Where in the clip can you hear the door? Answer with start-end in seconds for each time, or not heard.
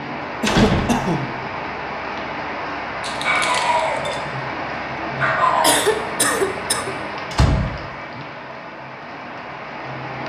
0.5-1.1, 7.3-8.2.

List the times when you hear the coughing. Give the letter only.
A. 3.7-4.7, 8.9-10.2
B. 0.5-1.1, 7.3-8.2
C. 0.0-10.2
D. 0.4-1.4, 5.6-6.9
D.